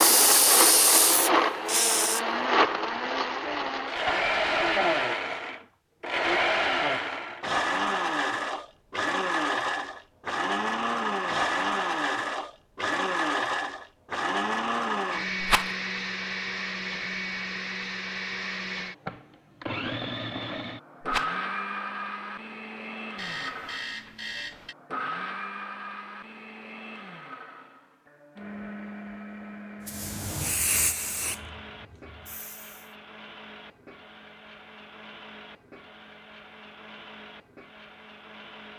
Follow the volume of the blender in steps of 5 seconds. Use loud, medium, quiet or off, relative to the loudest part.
loud, loud, loud, medium, medium, quiet, quiet, quiet.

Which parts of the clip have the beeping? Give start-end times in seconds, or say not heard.
23.1-24.8.